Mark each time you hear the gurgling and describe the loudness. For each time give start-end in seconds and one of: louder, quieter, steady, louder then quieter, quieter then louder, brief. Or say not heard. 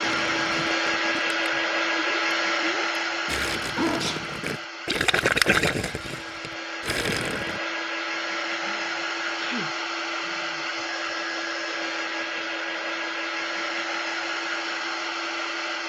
0.0-7.6 louder then quieter.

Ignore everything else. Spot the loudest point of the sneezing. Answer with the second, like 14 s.
4 s.